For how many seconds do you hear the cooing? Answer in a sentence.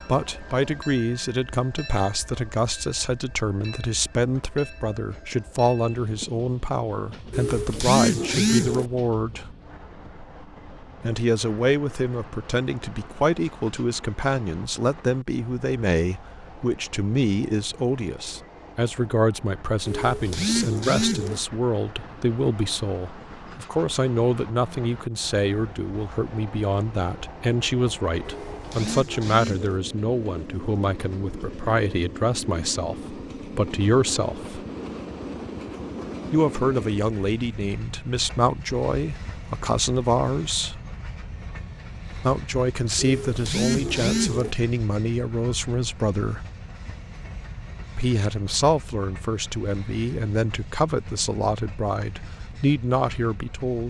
The cooing can be heard for 6 seconds in total.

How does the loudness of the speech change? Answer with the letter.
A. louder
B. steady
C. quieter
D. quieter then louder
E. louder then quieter
B.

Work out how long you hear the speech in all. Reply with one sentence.
You can hear the speech for 48 seconds altogether.